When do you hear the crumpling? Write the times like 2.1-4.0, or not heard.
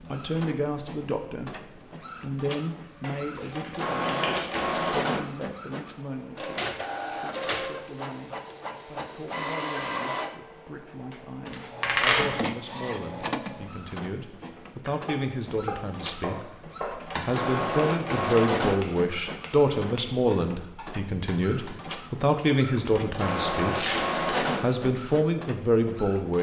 3.0-4.8, 11.8-12.2, 23.2-24.6.